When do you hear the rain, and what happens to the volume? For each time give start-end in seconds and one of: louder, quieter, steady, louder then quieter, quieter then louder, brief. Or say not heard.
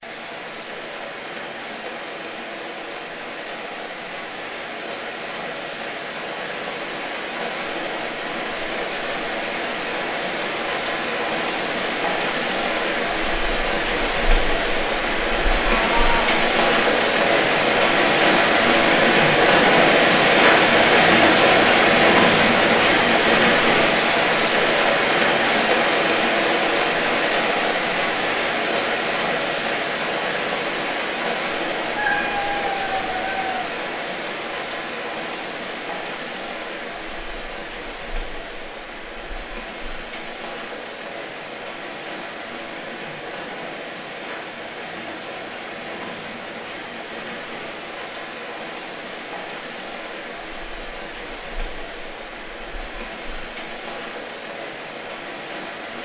0.0-56.0 louder then quieter.